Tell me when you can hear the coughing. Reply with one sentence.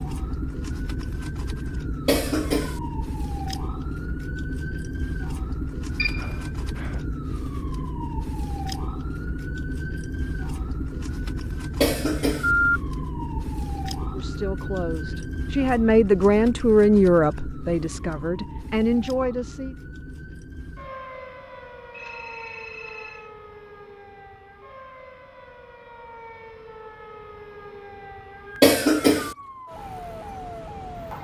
The coughing can be heard from 2.0 to 2.8 s, from 11.8 to 12.5 s and from 28.6 to 29.4 s.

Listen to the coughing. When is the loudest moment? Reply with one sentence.
The volume of the coughing peaks at 29 seconds.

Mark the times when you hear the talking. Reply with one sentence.
You can hear the talking from 14.1 to 19.8 s.